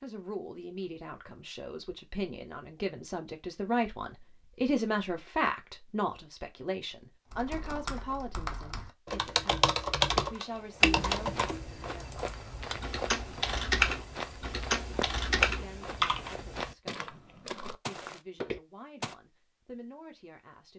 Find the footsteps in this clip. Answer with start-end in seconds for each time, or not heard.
10.2-19.1.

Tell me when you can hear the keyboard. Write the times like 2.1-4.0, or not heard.
7.3-16.3.